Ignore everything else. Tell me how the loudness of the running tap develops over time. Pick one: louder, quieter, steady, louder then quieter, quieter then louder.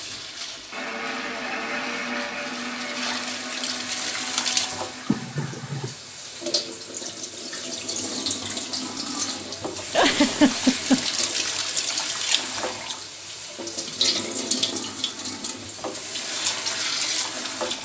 louder.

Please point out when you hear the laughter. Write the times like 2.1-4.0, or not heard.
5.1-6.0, 9.9-11.1.